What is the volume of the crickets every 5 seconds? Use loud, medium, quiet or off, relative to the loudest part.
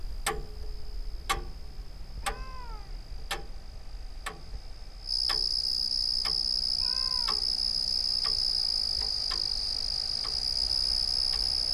quiet, loud, loud.